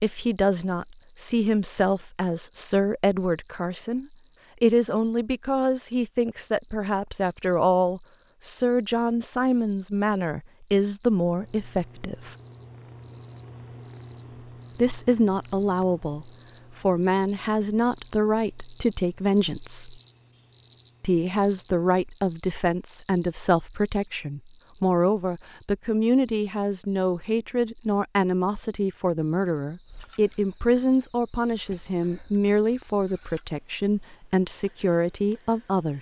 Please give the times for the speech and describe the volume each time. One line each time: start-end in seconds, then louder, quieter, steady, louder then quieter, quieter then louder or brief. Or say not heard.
0.0-12.3 steady
14.8-19.9 steady
21.0-35.9 steady.